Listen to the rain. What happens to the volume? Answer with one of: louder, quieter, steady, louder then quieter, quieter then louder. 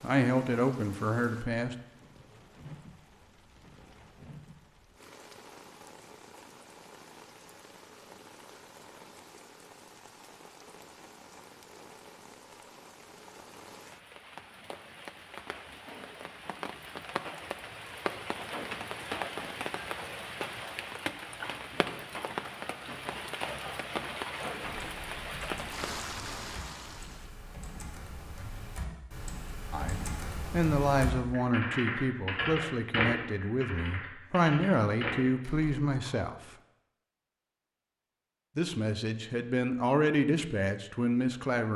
louder.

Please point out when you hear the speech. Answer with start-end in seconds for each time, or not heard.
0.0-1.8, 29.7-36.4, 38.5-41.7.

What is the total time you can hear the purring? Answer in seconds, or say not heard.
not heard.